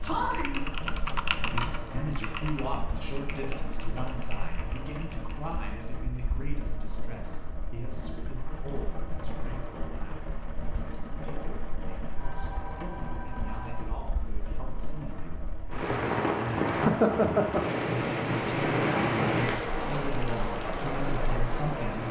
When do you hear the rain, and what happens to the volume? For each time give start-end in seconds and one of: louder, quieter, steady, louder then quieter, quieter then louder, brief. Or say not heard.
0.0-22.0 louder.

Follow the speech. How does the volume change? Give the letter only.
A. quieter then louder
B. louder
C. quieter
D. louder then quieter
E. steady
A.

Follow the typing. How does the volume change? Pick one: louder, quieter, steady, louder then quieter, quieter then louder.
quieter.